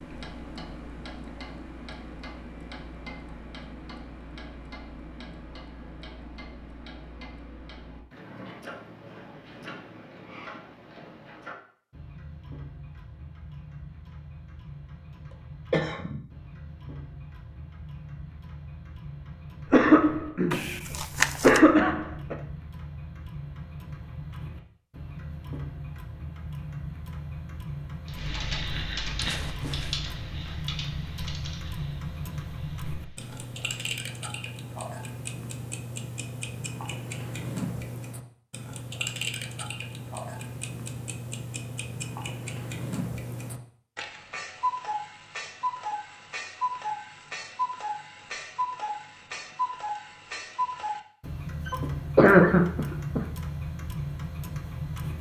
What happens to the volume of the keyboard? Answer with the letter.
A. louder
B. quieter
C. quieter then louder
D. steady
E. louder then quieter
B.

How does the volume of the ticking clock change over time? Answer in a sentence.
The volume of the ticking clock goes up.